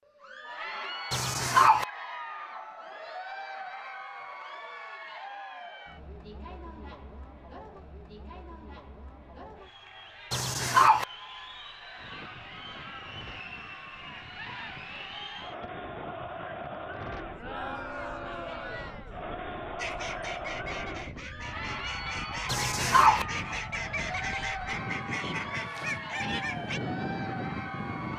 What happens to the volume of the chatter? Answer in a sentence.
The volume of the chatter goes down, then up.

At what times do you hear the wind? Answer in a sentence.
You can hear the wind from 11.9 to 28.1 s.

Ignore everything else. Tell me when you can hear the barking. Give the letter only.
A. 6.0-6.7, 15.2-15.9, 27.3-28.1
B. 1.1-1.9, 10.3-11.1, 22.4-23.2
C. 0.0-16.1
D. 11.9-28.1
B.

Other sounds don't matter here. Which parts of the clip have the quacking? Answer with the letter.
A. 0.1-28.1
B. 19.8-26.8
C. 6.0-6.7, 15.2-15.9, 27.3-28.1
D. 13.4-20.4
B.